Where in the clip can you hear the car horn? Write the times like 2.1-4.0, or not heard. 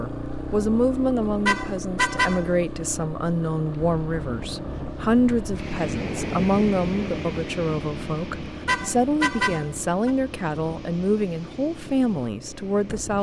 1.4-2.5, 8.7-10.1.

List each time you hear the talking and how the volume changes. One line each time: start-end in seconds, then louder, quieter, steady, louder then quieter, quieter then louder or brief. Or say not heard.
0.0-13.1 steady.